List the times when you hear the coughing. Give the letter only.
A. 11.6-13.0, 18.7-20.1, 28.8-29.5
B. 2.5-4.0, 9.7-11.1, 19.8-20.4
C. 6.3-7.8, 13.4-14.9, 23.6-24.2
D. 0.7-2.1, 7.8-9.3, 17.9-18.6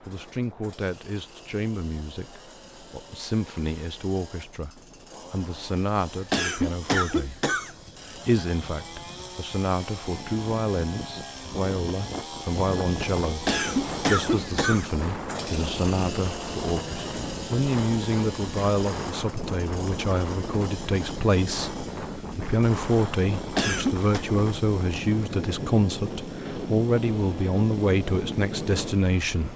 C.